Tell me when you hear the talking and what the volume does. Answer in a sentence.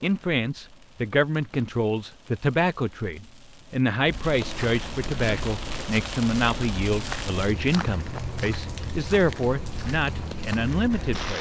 The talking can be heard from 0.0 to 11.3 s, at a steady volume.